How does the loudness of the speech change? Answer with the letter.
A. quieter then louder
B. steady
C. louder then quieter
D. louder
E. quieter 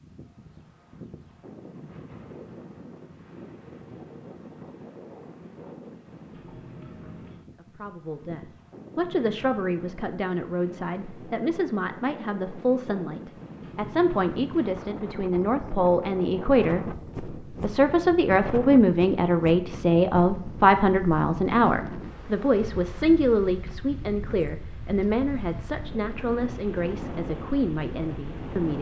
C.